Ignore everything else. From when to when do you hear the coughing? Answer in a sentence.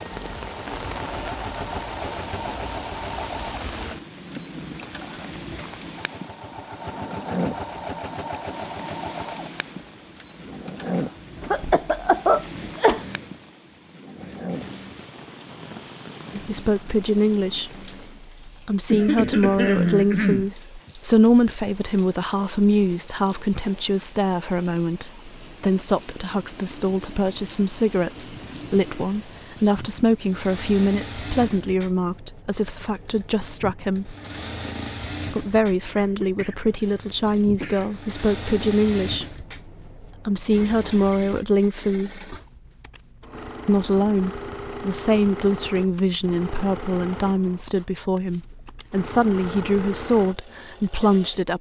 You can hear the coughing from 11.4 to 13.0 s, from 18.9 to 20.9 s and from 35.9 to 38.0 s.